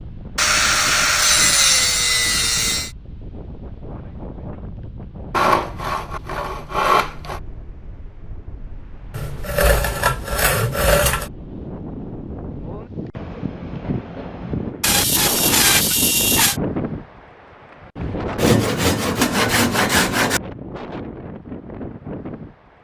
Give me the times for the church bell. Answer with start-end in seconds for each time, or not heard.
not heard.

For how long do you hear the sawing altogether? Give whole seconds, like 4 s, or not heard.
11 s.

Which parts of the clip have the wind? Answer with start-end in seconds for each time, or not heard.
0.0-22.7.